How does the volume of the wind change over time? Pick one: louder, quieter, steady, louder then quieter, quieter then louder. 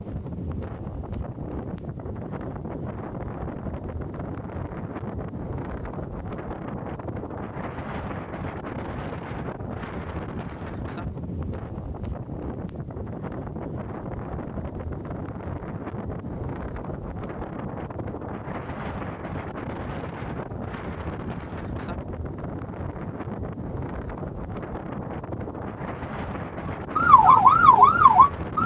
steady.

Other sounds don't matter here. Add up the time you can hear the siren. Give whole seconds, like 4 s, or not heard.
2 s.